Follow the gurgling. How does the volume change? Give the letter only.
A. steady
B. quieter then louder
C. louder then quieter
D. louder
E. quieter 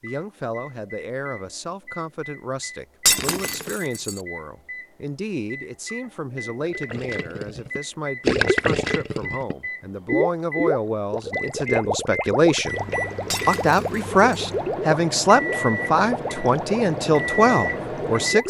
E.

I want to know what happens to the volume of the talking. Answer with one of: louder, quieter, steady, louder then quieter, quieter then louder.
louder.